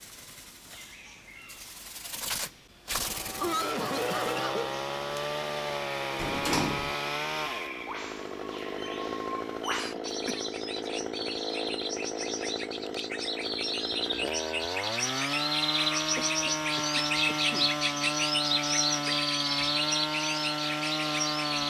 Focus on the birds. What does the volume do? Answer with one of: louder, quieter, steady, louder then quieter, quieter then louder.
louder.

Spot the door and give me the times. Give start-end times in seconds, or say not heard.
6.2-7.0.